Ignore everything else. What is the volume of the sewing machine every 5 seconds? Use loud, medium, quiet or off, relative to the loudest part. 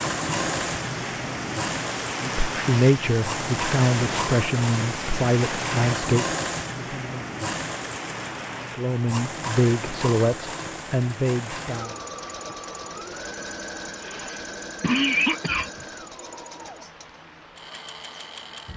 loud, loud, medium, medium.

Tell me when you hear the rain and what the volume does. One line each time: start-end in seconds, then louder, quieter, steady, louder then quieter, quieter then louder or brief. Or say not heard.
0.0-18.7 quieter.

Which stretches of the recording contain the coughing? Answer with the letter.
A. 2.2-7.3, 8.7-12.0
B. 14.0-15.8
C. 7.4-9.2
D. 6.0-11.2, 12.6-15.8
B.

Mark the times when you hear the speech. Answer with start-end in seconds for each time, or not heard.
2.2-7.3, 8.7-12.0.